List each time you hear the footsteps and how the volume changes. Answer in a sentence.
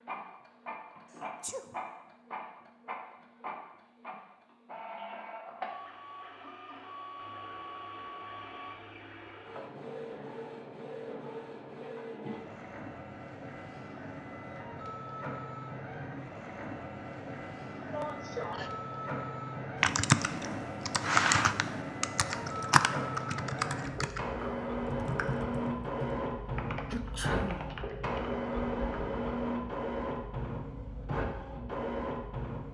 You can't hear the footsteps here.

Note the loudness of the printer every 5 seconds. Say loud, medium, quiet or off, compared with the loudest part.
medium, medium, medium, medium, loud, loud, loud.